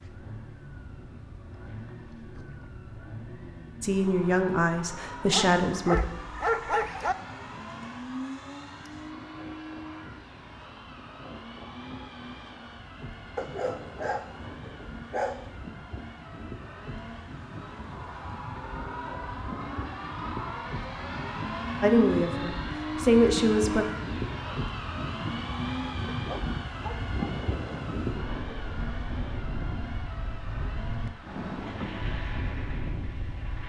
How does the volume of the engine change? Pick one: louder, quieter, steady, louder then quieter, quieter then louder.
louder then quieter.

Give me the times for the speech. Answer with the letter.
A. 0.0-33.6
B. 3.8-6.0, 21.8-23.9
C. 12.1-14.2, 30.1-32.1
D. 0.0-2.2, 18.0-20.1
B.